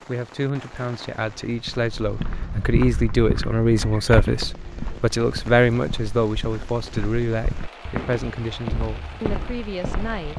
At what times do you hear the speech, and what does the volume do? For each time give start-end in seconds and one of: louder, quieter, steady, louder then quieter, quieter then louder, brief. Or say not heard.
0.1-10.3 louder then quieter.